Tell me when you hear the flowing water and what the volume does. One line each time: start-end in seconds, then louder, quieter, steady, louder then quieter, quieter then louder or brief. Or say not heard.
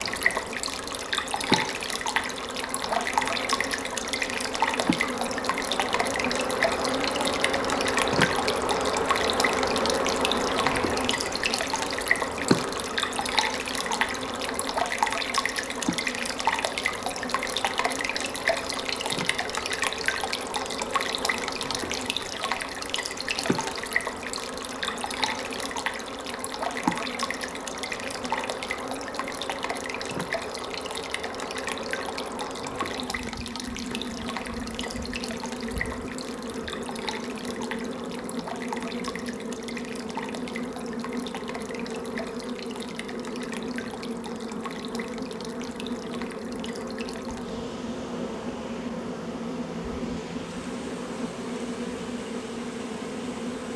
0.0-53.7 quieter.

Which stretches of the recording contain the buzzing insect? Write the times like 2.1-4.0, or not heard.
0.0-53.7.